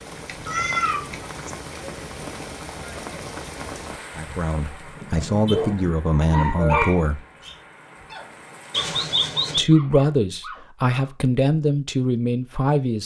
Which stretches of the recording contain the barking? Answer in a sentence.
The barking can be heard from 4.8 to 11.2 s.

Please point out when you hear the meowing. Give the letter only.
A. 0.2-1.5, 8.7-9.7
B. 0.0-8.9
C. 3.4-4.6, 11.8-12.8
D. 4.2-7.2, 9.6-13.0
A.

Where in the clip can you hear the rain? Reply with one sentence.
The rain can be heard from 0.0 to 8.9 s.